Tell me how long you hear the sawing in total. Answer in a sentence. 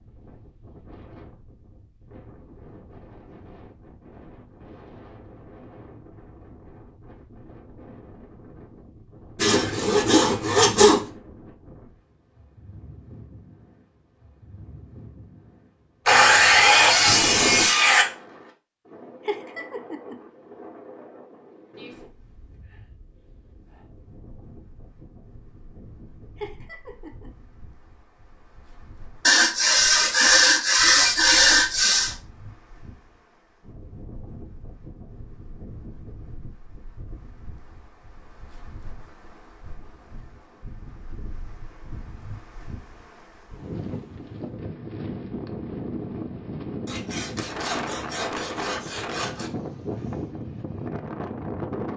The sawing can be heard for 9 seconds in total.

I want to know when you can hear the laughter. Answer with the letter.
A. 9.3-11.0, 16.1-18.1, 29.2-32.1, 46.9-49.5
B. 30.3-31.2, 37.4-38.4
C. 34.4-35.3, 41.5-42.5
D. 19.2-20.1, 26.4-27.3
D.